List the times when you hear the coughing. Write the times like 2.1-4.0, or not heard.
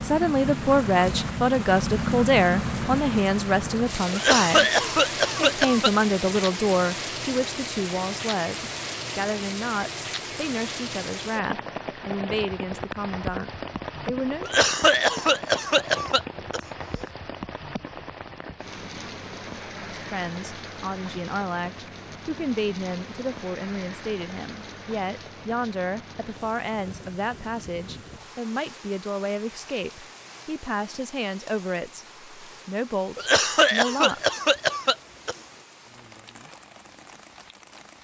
4.1-5.9, 14.4-16.6, 33.1-35.4.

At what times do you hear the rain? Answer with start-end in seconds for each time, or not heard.
0.0-37.9.